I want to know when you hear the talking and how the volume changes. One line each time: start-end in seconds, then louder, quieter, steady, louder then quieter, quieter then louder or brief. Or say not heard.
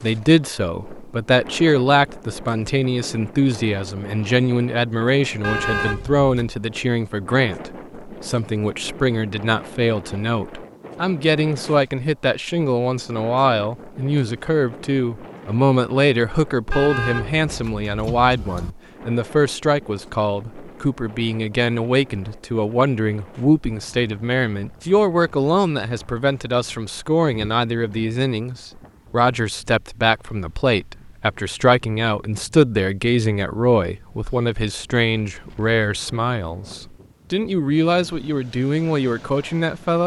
0.0-40.0 steady.